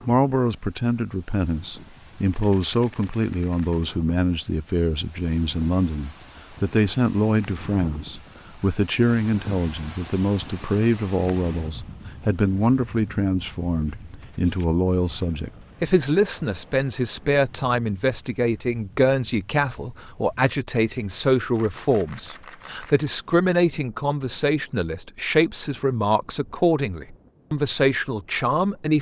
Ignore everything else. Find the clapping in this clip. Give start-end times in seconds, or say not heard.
not heard.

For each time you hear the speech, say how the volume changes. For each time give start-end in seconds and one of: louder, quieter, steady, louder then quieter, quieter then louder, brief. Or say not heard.
0.1-28.9 steady.